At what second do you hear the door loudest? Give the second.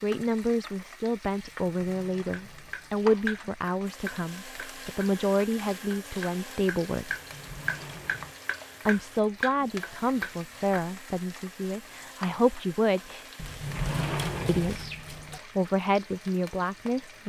14 s.